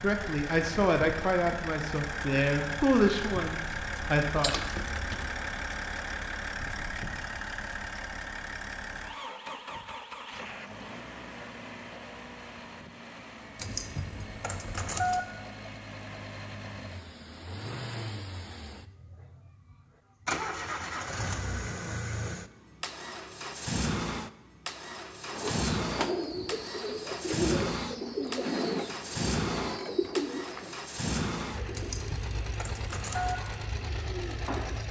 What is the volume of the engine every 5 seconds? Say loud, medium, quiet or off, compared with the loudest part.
loud, loud, medium, medium, loud, loud, loud.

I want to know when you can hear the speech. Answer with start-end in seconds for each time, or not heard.
0.0-4.5.